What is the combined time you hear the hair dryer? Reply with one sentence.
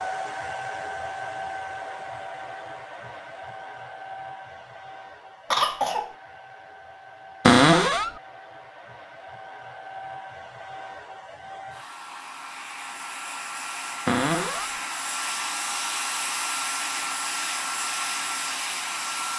The hair dryer can be heard for 19 seconds in total.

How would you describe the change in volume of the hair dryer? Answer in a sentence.
The loudness of the hair dryer goes down, then up.